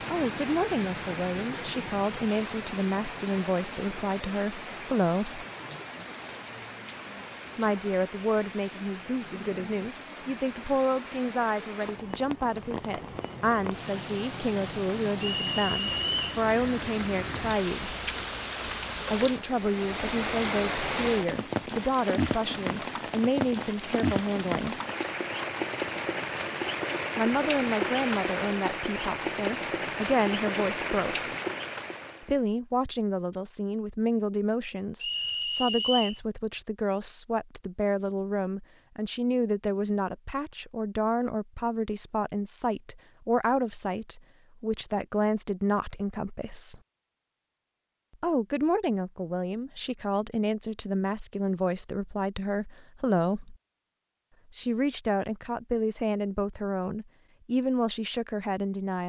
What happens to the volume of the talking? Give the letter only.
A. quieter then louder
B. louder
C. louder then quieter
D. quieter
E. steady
E.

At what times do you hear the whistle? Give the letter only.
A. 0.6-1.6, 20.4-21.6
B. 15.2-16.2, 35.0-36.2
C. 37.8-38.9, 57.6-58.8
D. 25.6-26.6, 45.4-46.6
B.